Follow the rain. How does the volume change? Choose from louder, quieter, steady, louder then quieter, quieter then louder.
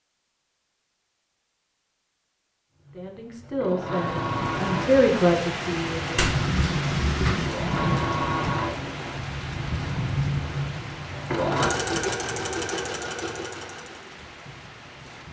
quieter.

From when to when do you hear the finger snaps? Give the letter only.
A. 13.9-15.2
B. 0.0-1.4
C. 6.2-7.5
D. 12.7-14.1
C.